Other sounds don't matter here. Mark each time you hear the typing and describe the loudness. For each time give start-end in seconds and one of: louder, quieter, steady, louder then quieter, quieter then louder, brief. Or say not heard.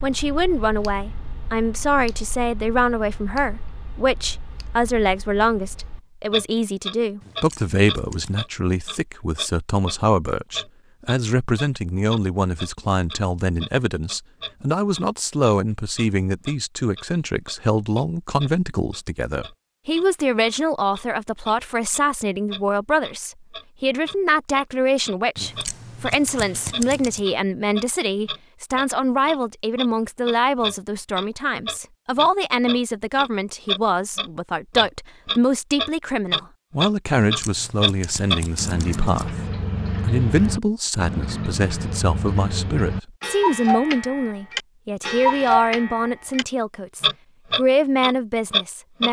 not heard.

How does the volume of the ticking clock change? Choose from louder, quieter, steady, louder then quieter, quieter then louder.
louder.